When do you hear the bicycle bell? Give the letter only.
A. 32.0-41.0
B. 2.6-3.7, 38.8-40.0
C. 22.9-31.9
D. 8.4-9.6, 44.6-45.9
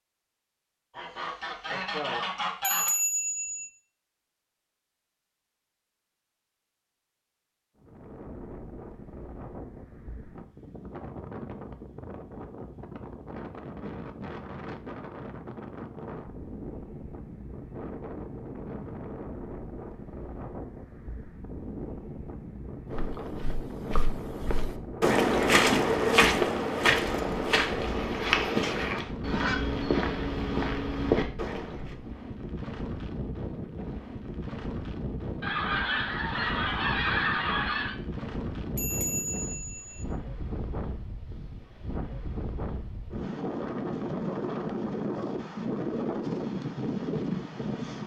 B.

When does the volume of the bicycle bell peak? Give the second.
3 s.